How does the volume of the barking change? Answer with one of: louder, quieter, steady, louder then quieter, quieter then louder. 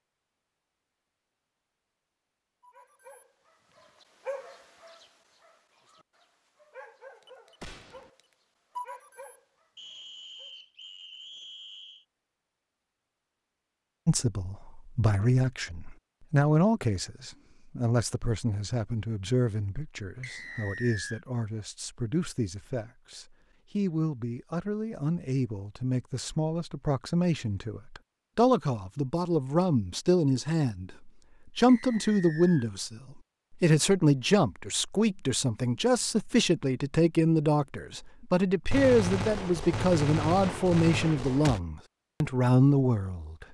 quieter then louder.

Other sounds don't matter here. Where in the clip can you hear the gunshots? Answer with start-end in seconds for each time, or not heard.
7.6-8.1, 38.7-41.6.